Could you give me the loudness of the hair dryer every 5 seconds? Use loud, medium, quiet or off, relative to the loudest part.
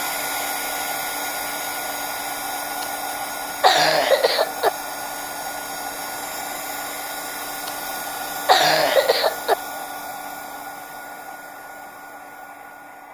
loud, loud, medium.